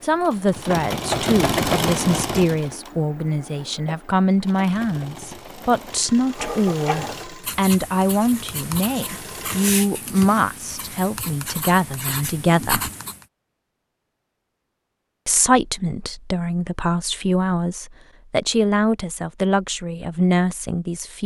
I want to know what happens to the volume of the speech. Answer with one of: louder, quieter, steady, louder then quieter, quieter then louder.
steady.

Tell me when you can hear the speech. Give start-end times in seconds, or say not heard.
0.0-12.9, 15.2-21.2.